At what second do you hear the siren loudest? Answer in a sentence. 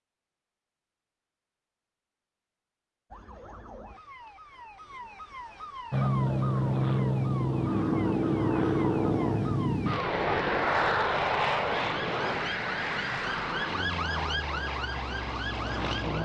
The volume of the siren peaks at 14 seconds.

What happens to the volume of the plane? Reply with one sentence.
The volume of the plane goes down.